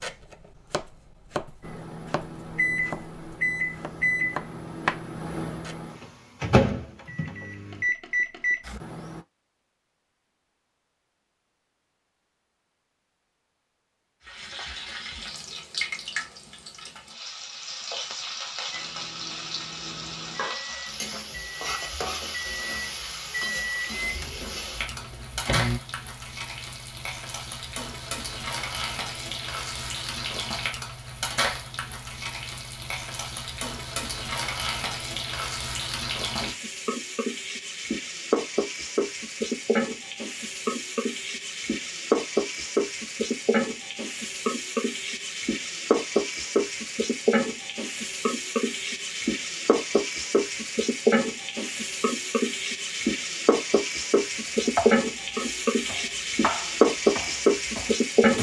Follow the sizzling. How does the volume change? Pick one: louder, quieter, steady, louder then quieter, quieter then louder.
louder.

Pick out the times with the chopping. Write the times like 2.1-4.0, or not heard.
0.0-5.8, 54.6-58.3.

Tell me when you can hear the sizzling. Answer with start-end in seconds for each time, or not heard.
14.2-58.3.